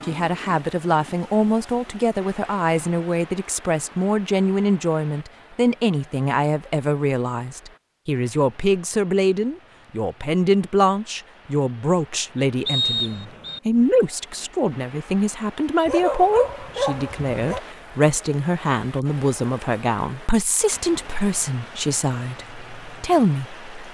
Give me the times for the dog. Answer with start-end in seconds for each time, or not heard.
15.8-17.6.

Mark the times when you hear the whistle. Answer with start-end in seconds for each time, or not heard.
12.7-13.6.